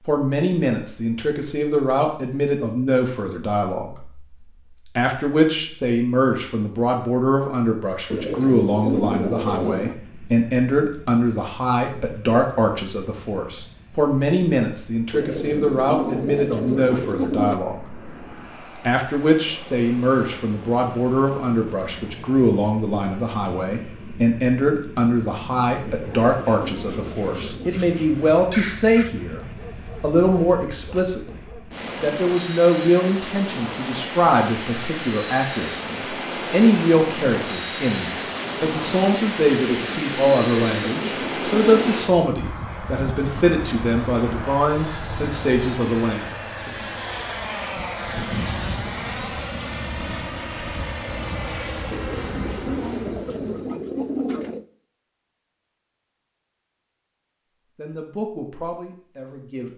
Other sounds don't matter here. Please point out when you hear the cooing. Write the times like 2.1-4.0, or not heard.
8.1-10.0, 15.1-17.6, 25.9-27.7, 39.7-42.0, 51.9-54.6.